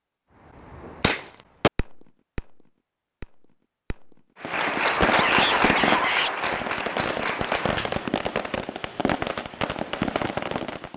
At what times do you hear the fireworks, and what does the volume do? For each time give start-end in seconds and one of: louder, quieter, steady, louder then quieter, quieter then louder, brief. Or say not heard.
0.6-10.9 quieter then louder.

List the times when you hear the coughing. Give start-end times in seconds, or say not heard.
not heard.